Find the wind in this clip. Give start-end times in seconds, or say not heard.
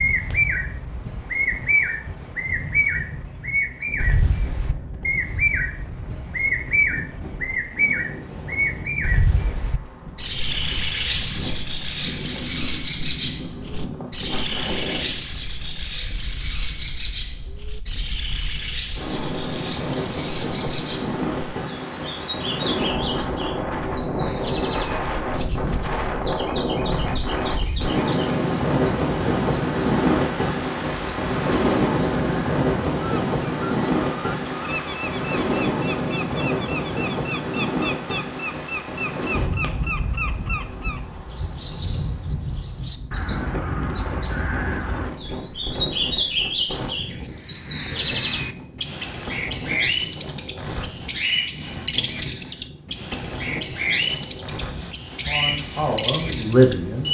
0.0-57.1.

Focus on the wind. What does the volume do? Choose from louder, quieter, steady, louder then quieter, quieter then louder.
louder then quieter.